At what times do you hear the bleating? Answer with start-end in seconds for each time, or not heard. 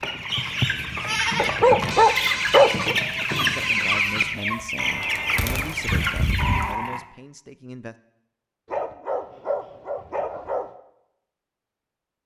0.3-7.0.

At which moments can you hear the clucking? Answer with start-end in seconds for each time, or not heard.
0.0-6.8.